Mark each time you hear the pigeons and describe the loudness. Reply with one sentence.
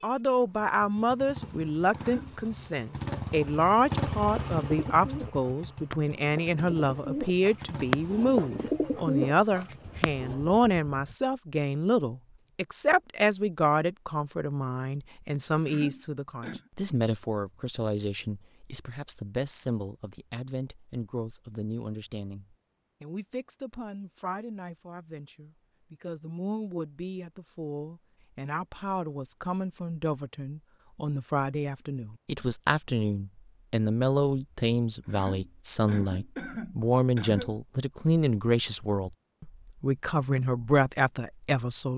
The pigeons can be heard from 4.2 to 10.5 s, getting louder.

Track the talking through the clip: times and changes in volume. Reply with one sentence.
The talking can be heard from 0.0 to 41.9 s, getting quieter then louder.